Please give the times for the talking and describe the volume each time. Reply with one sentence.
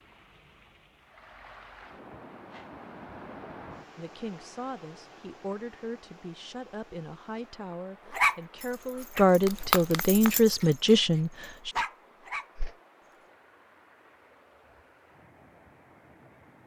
The talking can be heard from 4.0 to 11.7 s, getting louder.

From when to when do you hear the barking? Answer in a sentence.
The barking can be heard from 8.1 to 12.5 s.